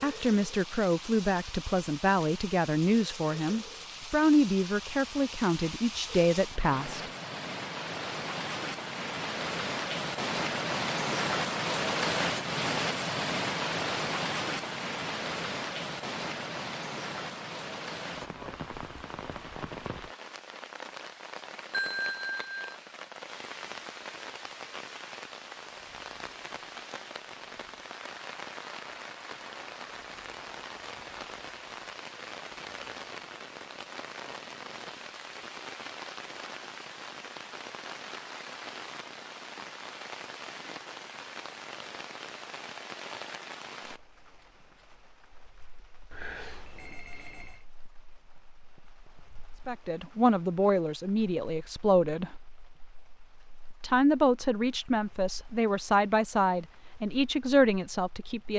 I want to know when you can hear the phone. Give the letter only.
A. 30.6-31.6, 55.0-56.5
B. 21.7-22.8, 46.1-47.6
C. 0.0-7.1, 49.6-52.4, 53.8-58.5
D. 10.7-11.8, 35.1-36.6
B.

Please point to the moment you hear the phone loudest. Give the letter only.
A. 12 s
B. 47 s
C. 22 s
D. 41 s
C.